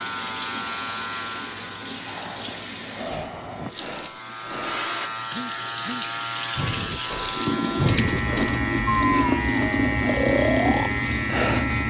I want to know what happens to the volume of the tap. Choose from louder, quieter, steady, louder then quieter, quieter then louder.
louder.